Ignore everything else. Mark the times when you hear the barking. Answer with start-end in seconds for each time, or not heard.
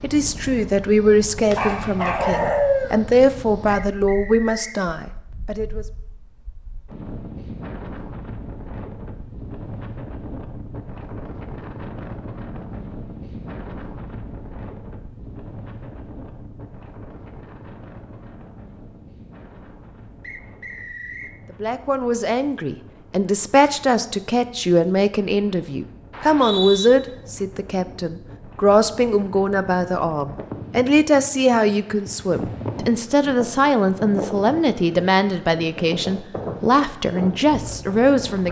1.5-3.0.